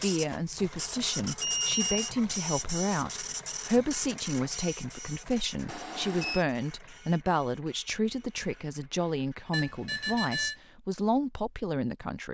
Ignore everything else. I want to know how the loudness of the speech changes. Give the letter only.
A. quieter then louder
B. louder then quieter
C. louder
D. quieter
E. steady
E.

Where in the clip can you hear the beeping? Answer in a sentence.
You can hear the beeping from 1.4 to 2.1 s, from 5.7 to 6.5 s and from 9.5 to 10.6 s.